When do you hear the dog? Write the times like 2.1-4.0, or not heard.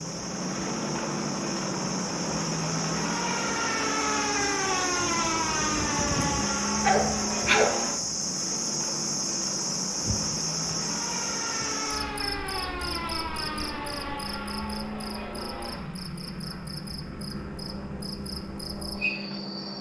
6.7-7.8.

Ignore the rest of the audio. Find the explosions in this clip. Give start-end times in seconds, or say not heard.
not heard.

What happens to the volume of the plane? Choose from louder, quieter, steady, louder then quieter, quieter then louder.
quieter.